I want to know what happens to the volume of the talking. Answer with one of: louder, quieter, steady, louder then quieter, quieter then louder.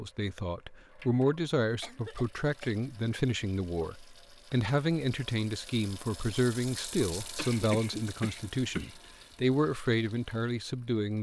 steady.